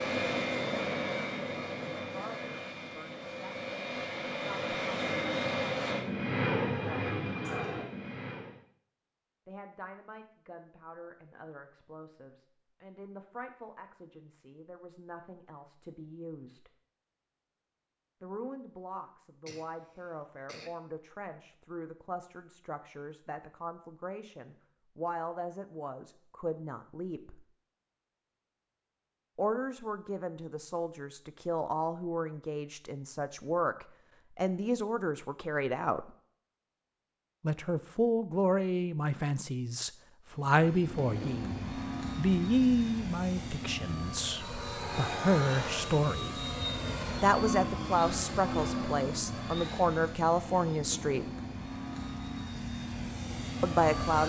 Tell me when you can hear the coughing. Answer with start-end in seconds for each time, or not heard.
19.4-20.8.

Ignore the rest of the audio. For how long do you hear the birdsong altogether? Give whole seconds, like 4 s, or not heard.
not heard.